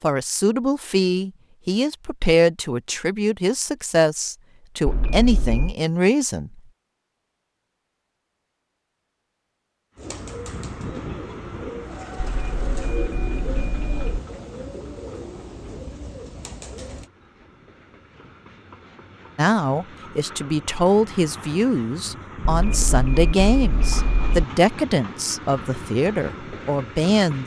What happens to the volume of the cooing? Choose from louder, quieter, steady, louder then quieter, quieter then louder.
louder then quieter.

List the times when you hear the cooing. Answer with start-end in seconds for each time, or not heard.
9.9-17.1.